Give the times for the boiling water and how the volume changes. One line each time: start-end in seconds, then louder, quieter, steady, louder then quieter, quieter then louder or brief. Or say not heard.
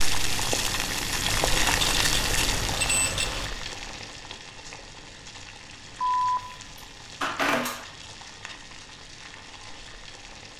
0.0-10.5 quieter.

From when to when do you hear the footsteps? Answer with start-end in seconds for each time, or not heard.
not heard.